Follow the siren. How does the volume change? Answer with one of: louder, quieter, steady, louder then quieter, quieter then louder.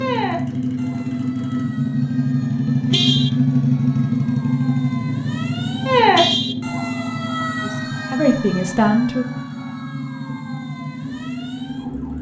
louder then quieter.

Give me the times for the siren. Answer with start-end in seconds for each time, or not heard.
0.0-12.1.